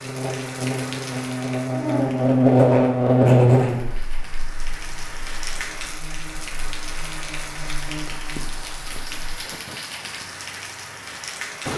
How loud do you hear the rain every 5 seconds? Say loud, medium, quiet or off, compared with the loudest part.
medium, loud, loud.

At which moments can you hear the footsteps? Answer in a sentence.
The footsteps can't be heard in this clip.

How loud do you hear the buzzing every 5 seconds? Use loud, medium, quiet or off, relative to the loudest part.
loud, quiet, off.